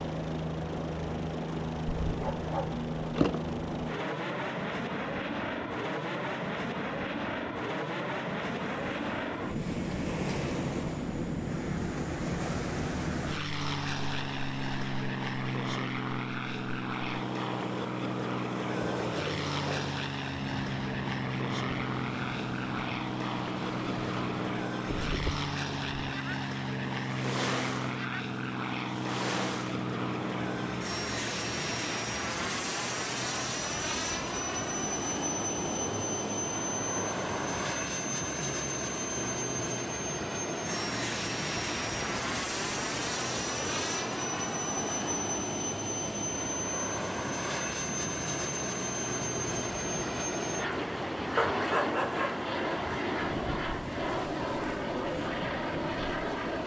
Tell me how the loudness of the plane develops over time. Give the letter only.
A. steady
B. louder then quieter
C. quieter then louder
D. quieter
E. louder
A.